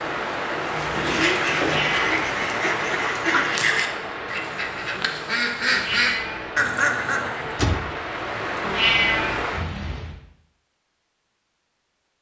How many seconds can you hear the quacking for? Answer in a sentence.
You can hear the quacking for 7 seconds altogether.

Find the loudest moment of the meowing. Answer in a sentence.
The loudest moment of the meowing is at 9 seconds.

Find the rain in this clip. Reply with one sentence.
You can hear the rain from 0.0 to 10.2 s.